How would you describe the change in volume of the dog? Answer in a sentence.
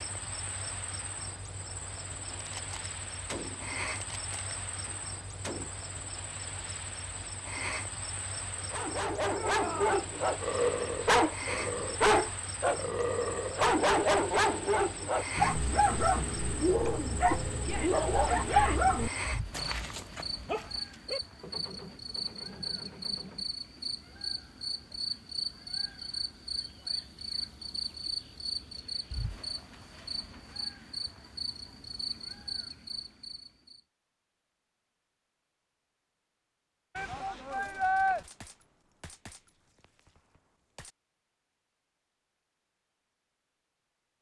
The loudness of the dog stays about the same.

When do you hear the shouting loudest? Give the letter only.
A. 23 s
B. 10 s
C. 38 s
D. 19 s
C.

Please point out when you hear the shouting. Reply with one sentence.
You can hear the shouting from 9.3 to 10.0 s, from 17.6 to 18.9 s and from 37.0 to 38.2 s.